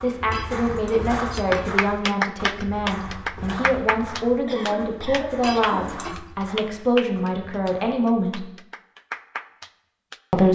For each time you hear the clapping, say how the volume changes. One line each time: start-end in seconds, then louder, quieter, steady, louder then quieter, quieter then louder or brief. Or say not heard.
1.4-10.2 quieter.